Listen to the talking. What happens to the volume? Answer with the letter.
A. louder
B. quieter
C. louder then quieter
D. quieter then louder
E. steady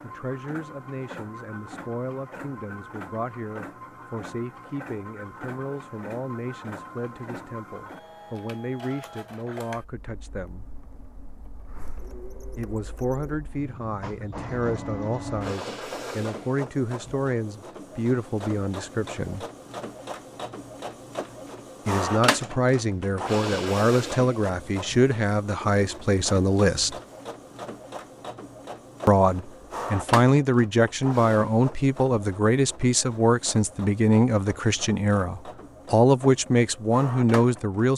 A.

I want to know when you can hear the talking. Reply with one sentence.
You can hear the talking from 0.0 to 10.7 s, from 12.6 to 19.4 s, from 21.9 to 26.9 s and from 29.1 to 37.9 s.